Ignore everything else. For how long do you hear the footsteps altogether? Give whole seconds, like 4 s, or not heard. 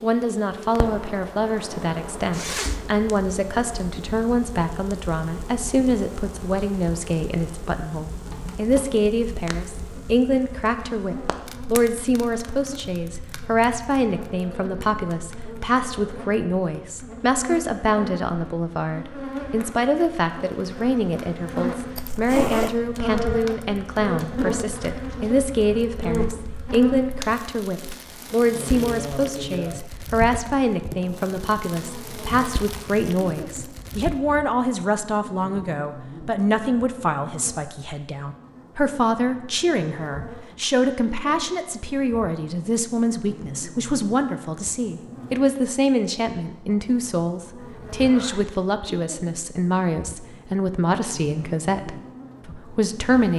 not heard.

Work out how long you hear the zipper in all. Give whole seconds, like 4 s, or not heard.
2 s.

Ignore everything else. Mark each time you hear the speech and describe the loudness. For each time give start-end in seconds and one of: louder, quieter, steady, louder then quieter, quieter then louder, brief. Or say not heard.
0.0-53.3 steady.